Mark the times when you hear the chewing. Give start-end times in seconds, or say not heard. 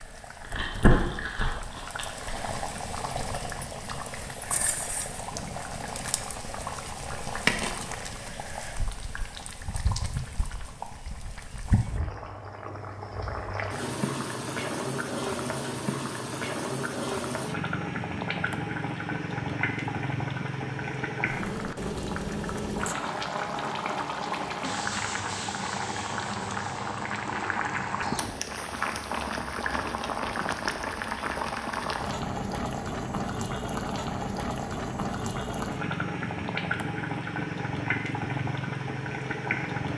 0.0-2.5.